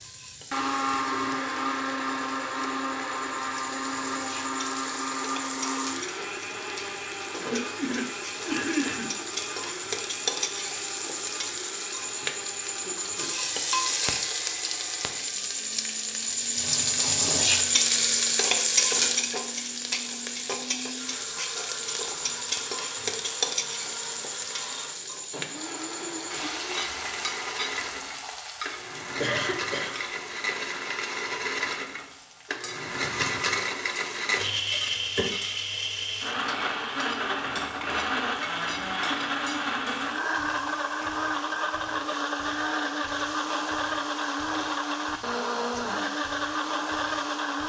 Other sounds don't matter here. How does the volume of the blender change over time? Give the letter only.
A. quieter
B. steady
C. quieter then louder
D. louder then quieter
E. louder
C.